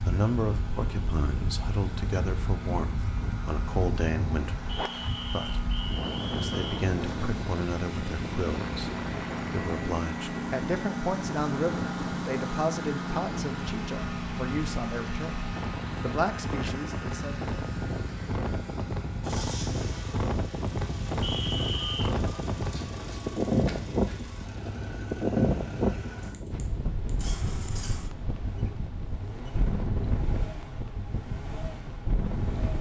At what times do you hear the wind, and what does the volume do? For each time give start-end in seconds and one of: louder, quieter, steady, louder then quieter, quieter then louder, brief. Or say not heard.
0.0-32.7 louder then quieter.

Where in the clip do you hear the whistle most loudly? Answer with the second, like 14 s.
22 s.